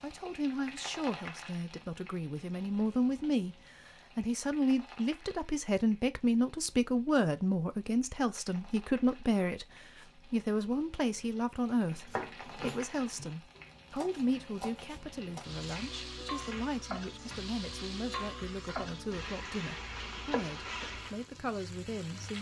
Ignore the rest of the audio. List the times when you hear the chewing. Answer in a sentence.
You can't hear the chewing here.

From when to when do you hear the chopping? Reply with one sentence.
The chopping can be heard from 11.9 to 18.9 s.